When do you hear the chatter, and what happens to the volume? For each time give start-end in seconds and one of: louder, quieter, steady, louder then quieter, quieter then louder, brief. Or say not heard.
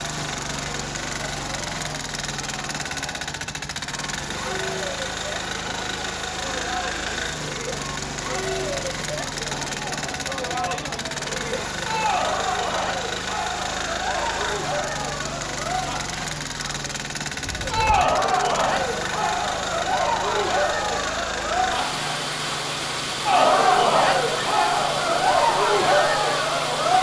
0.0-26.9 louder.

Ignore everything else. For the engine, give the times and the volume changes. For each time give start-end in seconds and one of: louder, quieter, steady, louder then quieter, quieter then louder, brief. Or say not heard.
0.0-26.9 steady.